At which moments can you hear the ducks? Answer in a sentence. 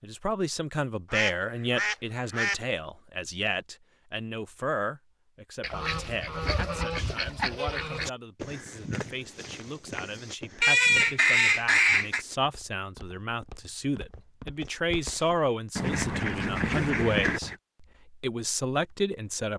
The ducks can be heard from 1.1 to 2.5 s, from 5.6 to 8.1 s, from 10.6 to 12.2 s and from 15.8 to 17.6 s.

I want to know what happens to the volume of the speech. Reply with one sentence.
The volume of the speech goes down, then up.